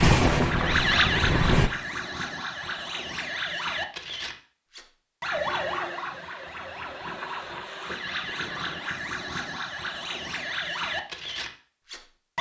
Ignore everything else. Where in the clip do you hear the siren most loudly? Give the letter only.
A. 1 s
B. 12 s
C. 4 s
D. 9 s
A.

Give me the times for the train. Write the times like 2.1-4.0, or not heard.
0.0-1.7.